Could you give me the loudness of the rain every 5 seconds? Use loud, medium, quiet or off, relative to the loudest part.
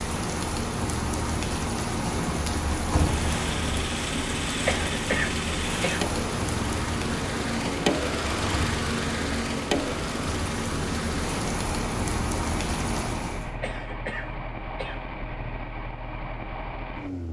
loud, loud, loud, off.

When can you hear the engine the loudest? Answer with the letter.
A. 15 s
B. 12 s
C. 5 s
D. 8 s
D.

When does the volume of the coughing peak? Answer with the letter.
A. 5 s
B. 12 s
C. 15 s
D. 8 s
A.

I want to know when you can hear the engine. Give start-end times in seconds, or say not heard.
3.0-17.2.